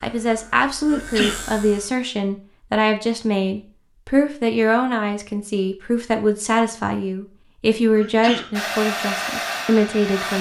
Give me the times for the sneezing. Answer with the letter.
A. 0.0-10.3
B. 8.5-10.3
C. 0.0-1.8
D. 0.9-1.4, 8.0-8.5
D.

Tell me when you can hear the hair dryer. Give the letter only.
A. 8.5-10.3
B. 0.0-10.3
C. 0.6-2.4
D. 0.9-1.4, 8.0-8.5
A.